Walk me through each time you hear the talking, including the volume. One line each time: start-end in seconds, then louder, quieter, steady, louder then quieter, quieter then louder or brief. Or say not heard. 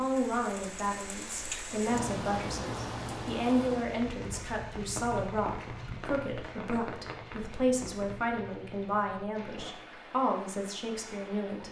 0.0-11.6 steady.